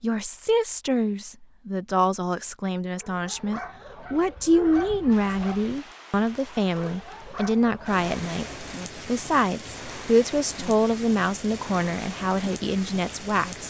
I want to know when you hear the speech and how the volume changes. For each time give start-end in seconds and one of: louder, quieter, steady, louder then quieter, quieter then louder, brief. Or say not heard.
0.0-13.6 steady.